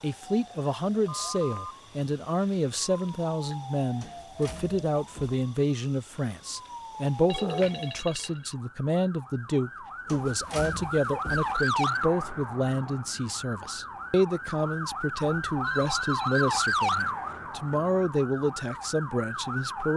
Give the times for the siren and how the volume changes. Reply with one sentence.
The siren can be heard from 0.0 to 19.9 s, getting louder.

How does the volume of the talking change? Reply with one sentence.
The loudness of the talking stays about the same.